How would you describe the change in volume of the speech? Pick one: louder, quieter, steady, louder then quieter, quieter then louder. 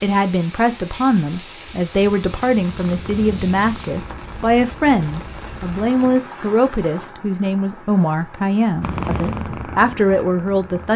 steady.